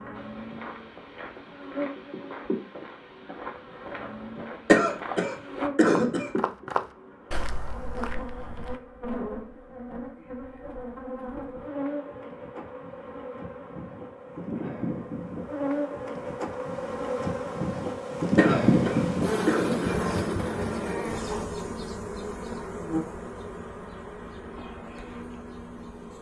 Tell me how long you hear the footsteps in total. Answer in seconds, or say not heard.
9 s.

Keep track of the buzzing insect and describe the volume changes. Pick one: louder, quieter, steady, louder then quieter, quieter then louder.
louder then quieter.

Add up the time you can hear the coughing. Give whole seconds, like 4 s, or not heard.
3 s.